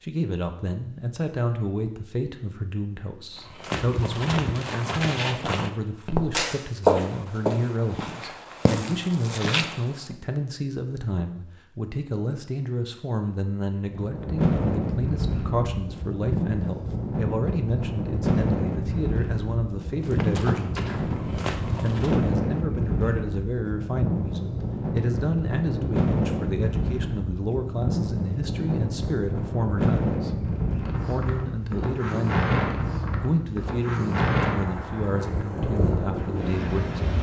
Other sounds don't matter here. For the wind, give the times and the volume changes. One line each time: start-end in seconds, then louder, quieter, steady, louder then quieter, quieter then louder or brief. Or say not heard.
13.8-37.1 steady.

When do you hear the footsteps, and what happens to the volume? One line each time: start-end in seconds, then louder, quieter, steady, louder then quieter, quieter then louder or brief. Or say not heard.
3.4-10.2 louder then quieter
20.0-22.2 brief.